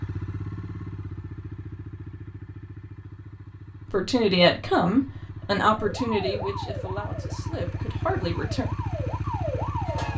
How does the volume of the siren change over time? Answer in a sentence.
The volume of the siren goes down, then up.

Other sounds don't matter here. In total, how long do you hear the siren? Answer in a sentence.
You can hear the siren for 4 seconds altogether.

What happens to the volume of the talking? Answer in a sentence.
The volume of the talking goes down, then up.